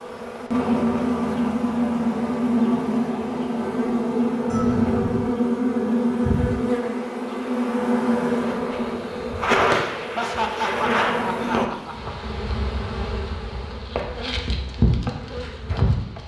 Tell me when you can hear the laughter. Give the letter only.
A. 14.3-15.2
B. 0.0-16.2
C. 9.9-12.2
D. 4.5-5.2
C.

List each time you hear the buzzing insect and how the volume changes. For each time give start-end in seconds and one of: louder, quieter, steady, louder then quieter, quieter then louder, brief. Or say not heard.
0.0-16.2 quieter.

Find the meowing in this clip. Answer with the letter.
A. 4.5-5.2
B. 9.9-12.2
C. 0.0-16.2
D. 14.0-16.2
A.